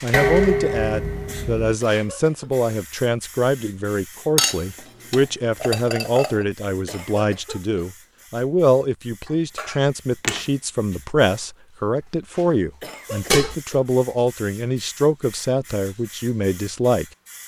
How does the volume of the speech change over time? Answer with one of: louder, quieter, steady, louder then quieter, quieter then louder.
steady.